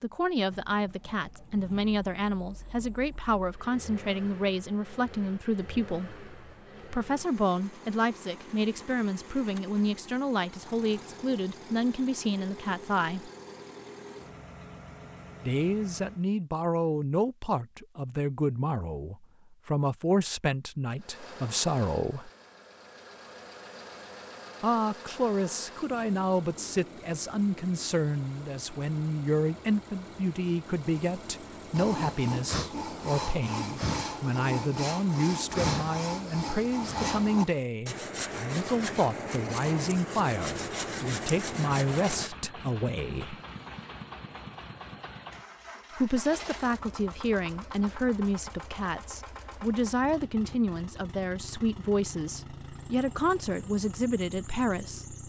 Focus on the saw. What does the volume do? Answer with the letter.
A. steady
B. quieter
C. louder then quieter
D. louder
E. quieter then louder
A.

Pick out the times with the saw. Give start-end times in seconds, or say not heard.
31.7-42.3.